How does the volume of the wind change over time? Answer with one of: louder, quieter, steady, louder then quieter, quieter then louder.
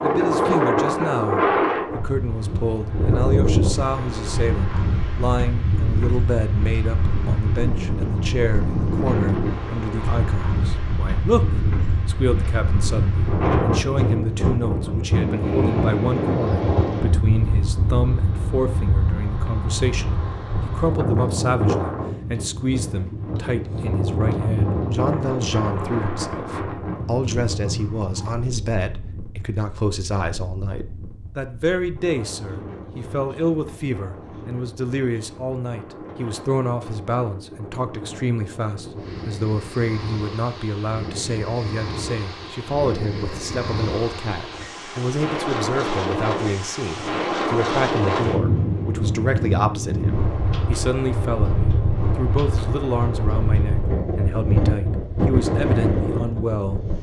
quieter then louder.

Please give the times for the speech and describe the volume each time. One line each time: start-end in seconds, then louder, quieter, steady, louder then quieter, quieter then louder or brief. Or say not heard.
0.0-56.8 steady.